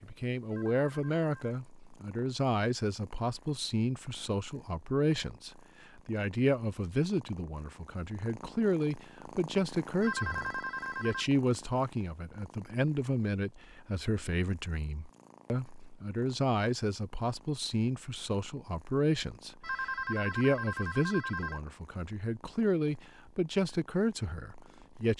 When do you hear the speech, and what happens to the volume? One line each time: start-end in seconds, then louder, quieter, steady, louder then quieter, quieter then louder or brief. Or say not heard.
0.0-25.1 steady.